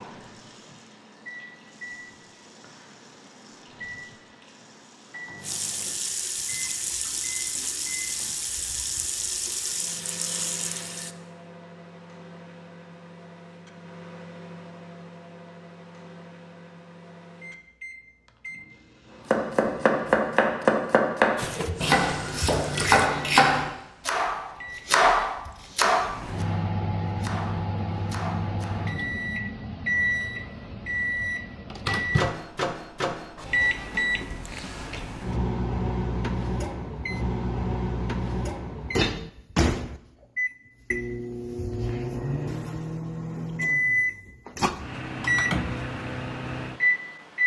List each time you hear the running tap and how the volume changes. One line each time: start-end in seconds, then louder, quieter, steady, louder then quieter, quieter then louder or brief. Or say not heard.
0.0-11.2 louder
21.4-23.1 brief.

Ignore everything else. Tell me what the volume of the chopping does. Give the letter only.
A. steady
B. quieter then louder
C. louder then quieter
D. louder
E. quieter
E.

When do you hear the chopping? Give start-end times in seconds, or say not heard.
19.3-29.0.